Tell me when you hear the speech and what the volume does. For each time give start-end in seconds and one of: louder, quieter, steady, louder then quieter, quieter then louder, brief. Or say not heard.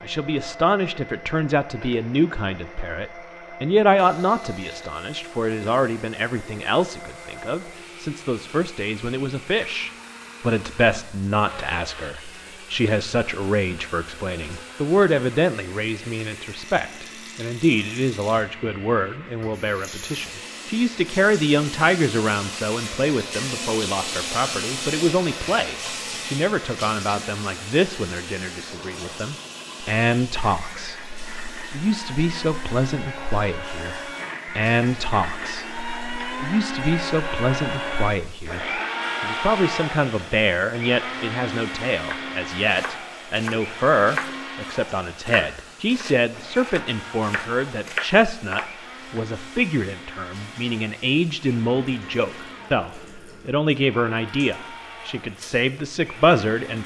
0.0-56.8 steady.